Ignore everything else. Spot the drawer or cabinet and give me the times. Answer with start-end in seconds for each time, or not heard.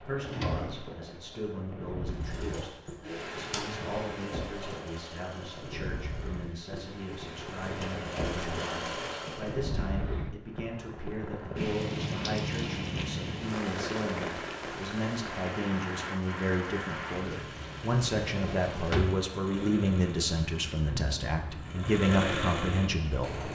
0.1-0.8, 18.3-19.2.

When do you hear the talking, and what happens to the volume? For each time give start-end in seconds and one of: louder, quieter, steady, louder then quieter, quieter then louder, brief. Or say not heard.
0.0-23.5 louder.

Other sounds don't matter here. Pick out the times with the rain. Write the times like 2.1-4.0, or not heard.
0.0-23.5.